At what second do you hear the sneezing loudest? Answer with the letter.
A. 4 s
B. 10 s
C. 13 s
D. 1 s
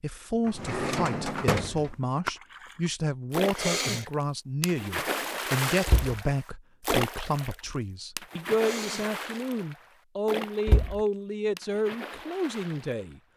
A.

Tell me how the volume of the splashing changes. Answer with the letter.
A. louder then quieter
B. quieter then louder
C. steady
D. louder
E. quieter
E.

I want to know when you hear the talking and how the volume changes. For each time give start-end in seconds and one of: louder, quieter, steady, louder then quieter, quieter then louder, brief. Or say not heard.
0.0-13.2 steady.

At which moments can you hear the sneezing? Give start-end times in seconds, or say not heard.
3.5-4.1, 8.6-9.1.